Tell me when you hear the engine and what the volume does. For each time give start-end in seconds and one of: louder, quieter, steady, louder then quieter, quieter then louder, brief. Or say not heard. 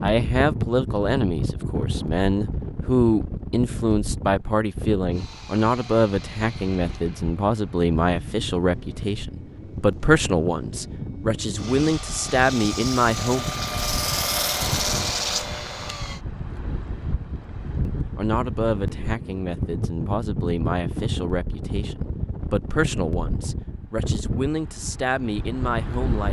5.1-16.2 louder.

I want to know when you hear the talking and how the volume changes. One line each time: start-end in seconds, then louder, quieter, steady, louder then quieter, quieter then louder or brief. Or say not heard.
0.0-13.4 steady
17.9-26.2 steady.